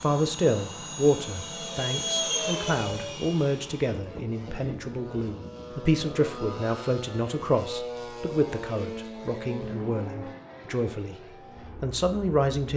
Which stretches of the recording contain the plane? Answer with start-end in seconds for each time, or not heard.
0.0-12.7.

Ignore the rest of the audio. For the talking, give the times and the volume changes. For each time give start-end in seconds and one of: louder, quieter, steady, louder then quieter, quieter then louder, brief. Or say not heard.
0.0-11.2 quieter
11.8-12.7 brief.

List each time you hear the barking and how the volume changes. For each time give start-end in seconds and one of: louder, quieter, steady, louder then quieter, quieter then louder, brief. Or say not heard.
not heard.